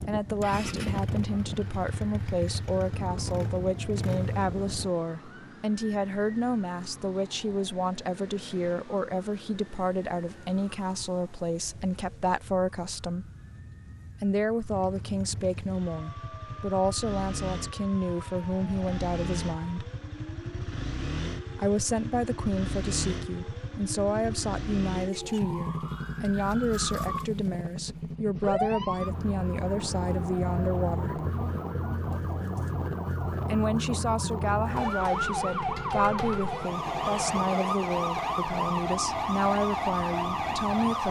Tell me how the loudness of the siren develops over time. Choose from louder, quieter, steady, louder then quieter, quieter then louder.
louder.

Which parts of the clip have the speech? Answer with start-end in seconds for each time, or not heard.
0.0-13.2, 14.2-19.9, 21.6-31.2, 33.5-41.0.